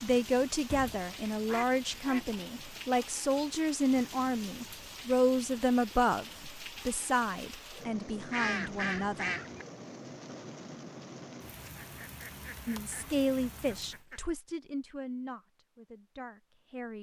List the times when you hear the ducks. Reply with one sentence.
The ducks can be heard from 0.7 to 2.9 s, from 8.3 to 9.7 s and from 11.6 to 14.2 s.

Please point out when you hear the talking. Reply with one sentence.
The talking can be heard from 0.0 to 9.3 s and from 12.7 to 16.9 s.